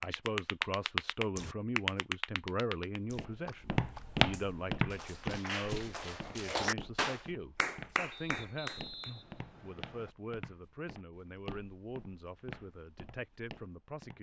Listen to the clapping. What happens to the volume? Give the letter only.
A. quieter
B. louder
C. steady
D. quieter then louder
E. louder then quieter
D.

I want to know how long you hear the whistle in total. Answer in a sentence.
The whistle can be heard for 2 seconds in total.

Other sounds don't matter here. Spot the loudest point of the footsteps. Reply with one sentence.
The loudest moment of the footsteps is at 4 seconds.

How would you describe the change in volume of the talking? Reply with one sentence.
The volume of the talking goes down.